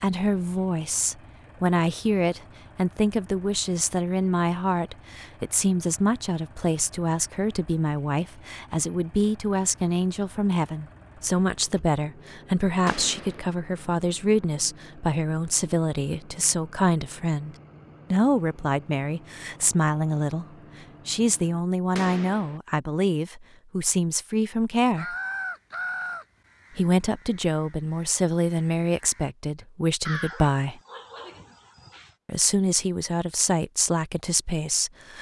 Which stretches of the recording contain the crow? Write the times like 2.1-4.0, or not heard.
24.9-30.4.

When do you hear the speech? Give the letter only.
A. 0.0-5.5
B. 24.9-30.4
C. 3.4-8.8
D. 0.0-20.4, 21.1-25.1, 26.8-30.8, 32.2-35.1
D.